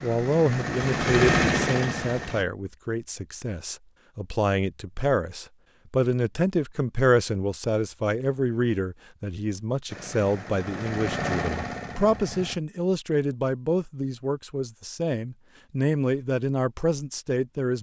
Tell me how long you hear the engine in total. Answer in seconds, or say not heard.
5 s.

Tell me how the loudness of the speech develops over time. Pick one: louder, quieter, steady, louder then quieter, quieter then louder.
steady.